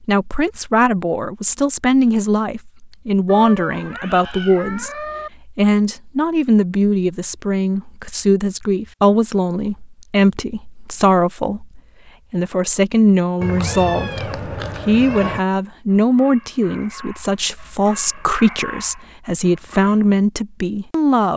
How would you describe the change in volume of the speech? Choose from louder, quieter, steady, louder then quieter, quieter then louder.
steady.